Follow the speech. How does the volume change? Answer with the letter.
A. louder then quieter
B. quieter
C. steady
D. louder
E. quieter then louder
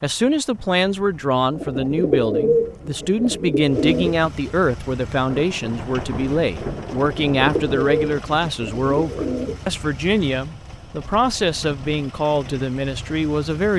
C.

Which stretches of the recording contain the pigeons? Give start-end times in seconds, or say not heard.
1.6-4.3, 7.0-9.7.